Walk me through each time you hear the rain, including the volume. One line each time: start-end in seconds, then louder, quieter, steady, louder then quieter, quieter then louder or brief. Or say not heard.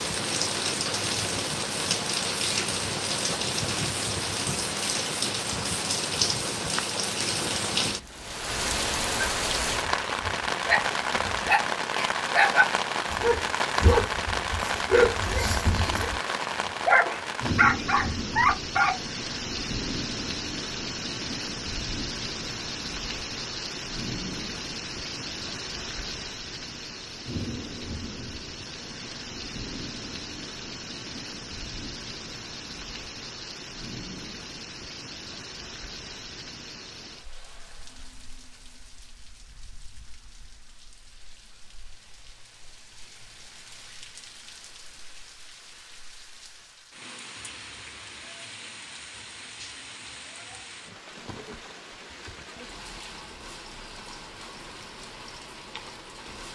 0.0-56.4 quieter.